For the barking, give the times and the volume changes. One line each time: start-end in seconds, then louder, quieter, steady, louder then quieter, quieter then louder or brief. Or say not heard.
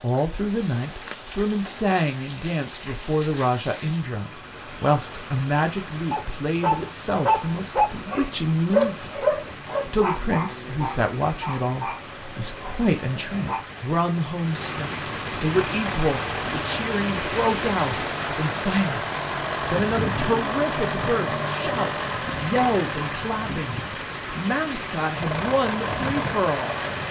6.1-13.7 quieter.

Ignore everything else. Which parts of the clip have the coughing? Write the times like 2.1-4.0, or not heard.
not heard.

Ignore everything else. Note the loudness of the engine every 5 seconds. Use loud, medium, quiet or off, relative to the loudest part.
off, off, off, loud, loud, loud.